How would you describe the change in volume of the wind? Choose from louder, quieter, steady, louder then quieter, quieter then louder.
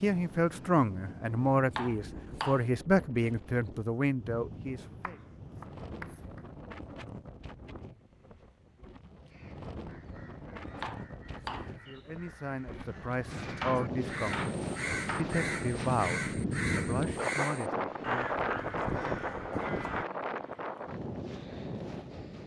louder.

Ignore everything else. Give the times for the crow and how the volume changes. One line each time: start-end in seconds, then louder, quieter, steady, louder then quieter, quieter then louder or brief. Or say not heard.
9.1-20.1 louder.